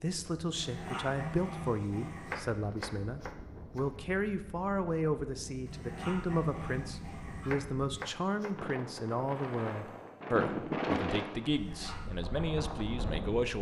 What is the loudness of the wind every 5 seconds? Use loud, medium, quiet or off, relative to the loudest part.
quiet, medium, loud.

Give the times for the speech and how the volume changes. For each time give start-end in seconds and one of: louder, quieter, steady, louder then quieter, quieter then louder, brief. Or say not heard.
0.0-13.5 steady.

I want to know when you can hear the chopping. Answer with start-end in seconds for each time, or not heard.
2.2-3.9, 7.5-9.1.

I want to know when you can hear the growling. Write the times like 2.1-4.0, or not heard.
0.5-2.5, 5.7-7.5, 11.4-12.2.